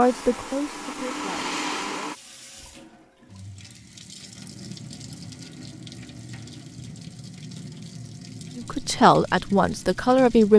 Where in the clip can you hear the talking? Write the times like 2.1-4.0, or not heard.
0.0-2.1, 8.6-10.5.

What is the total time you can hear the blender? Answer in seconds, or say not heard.
2 s.